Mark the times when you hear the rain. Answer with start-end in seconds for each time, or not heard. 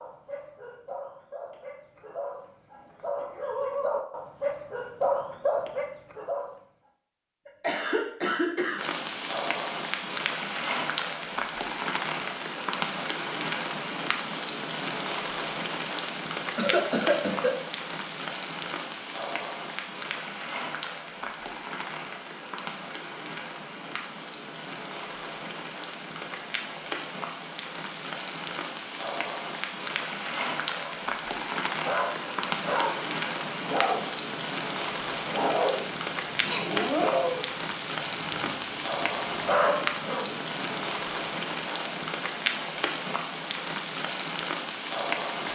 8.8-45.4.